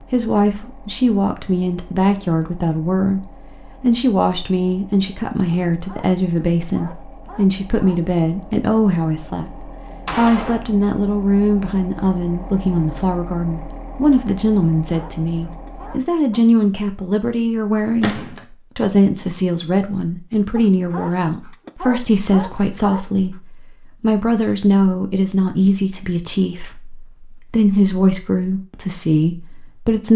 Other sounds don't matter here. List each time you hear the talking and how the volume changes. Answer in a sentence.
You can hear the talking from 0.0 to 30.1 s, at a steady volume.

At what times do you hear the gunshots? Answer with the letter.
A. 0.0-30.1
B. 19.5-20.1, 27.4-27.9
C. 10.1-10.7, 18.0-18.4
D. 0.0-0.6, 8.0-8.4
C.